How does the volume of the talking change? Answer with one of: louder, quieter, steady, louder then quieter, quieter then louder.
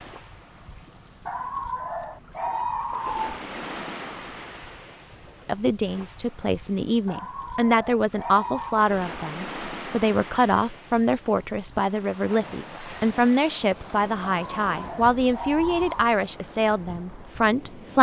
steady.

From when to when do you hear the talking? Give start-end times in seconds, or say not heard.
5.5-17.9.